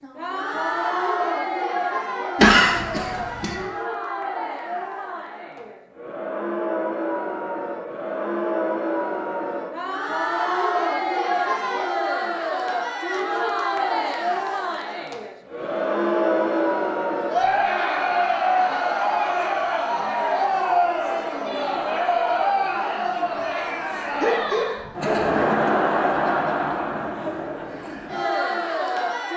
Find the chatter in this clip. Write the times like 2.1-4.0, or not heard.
0.0-29.3.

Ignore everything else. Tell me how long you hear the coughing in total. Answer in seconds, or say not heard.
3 s.